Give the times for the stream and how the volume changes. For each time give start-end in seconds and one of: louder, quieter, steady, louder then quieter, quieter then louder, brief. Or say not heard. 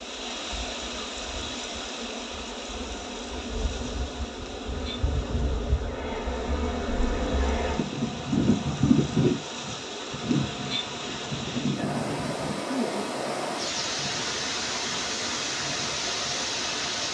0.0-17.1 quieter then louder.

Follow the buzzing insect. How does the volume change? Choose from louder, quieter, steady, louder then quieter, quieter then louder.
louder then quieter.